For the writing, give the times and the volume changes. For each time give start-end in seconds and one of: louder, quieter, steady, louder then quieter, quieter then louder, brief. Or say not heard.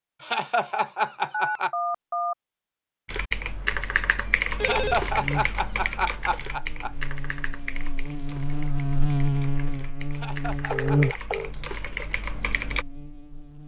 not heard.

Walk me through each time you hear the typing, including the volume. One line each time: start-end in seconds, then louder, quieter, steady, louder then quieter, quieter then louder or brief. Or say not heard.
3.0-12.8 quieter then louder.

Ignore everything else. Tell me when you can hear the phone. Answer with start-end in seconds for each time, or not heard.
1.3-2.4, 4.6-5.1, 10.7-11.5.